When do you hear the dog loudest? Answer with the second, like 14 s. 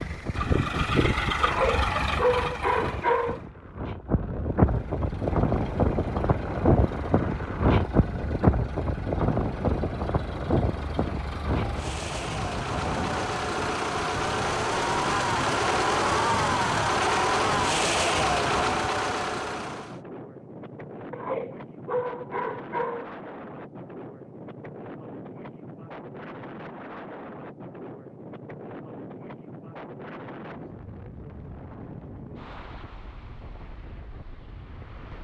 2 s.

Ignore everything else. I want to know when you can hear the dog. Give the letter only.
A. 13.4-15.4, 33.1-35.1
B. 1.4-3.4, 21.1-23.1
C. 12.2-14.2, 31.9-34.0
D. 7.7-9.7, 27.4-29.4
B.